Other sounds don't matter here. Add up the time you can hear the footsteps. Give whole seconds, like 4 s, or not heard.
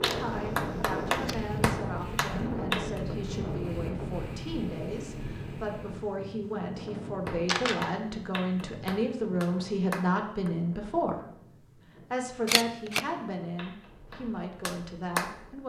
not heard.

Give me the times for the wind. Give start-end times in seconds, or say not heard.
0.0-15.6.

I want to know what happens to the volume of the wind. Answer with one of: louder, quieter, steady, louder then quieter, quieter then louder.
quieter.